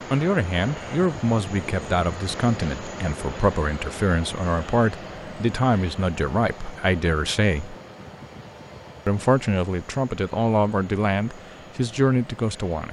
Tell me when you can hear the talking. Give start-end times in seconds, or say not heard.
0.1-7.8, 9.1-12.8.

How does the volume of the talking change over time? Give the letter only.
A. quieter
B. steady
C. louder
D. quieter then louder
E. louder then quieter
B.